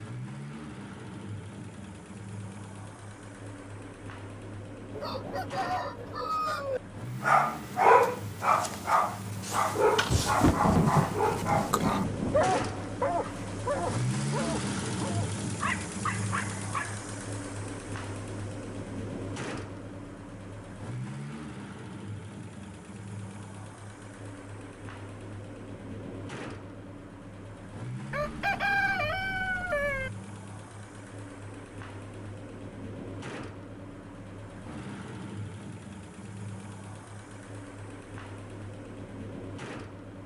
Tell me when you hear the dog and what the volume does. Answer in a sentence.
The dog can be heard from 7.2 to 17.1 s, getting quieter.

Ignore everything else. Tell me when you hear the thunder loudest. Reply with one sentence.
The volume of the thunder peaks at 11 seconds.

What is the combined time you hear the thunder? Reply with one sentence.
The thunder can be heard for 3 seconds in total.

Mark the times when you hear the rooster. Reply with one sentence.
You can hear the rooster from 4.9 to 6.8 s and from 28.1 to 30.1 s.